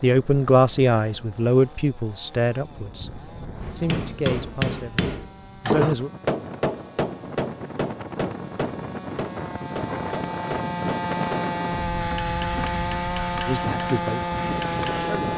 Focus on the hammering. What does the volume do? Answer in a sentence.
The volume of the hammering goes down.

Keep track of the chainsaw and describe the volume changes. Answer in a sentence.
The volume of the chainsaw goes up.